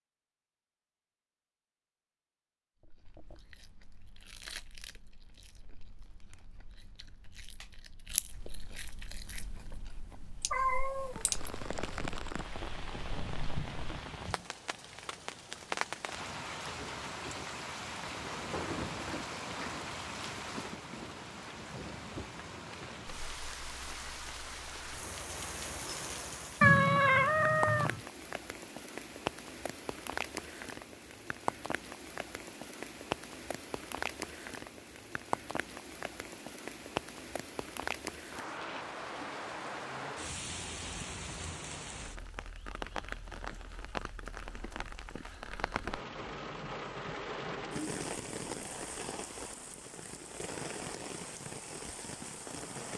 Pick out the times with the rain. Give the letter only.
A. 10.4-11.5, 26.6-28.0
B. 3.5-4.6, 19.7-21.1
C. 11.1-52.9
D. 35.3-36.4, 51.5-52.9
C.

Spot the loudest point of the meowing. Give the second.
27 s.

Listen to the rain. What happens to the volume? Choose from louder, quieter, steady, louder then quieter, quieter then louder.
steady.